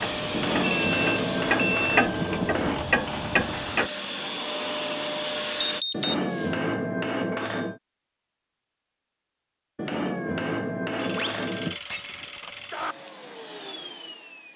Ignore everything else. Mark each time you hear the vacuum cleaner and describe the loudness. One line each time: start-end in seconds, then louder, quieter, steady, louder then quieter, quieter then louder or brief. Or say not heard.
0.0-5.8 quieter then louder
12.7-14.5 brief.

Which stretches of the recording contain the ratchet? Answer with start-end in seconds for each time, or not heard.
0.0-3.9.